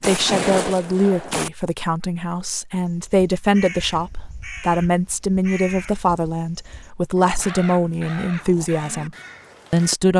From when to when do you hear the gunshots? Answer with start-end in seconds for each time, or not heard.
0.0-1.5.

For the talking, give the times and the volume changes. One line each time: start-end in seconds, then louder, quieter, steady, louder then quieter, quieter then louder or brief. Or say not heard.
0.1-10.1 steady.